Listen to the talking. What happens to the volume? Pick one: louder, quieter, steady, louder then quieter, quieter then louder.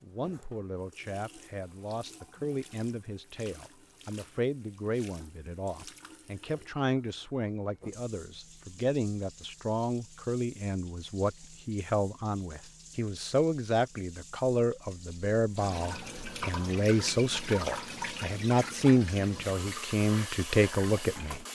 louder.